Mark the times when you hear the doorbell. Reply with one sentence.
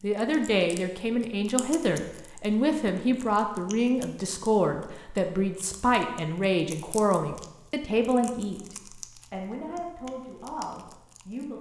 The doorbell can't be heard in this clip.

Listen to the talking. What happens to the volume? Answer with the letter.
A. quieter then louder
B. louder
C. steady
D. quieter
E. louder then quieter
D.